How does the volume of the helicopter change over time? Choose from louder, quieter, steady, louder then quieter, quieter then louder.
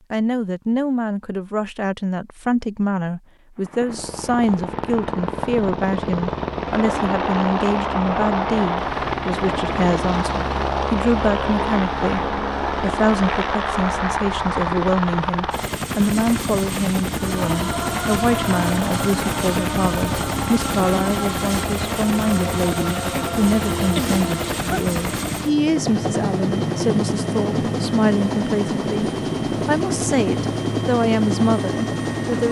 steady.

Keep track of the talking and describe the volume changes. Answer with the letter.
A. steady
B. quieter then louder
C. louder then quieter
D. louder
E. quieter
A.